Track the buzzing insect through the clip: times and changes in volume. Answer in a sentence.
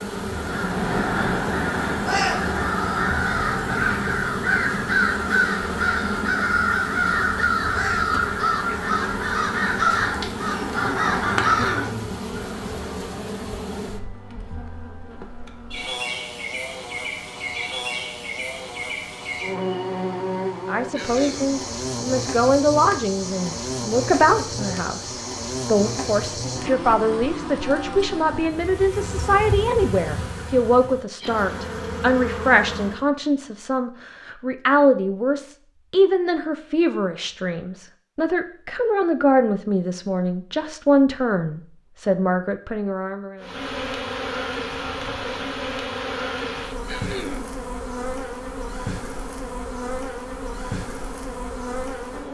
You can hear the buzzing insect from 0.0 to 33.0 s, at a steady volume; and from 43.4 to 52.2 s, at a steady volume.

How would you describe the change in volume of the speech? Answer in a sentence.
The volume of the speech stays about the same.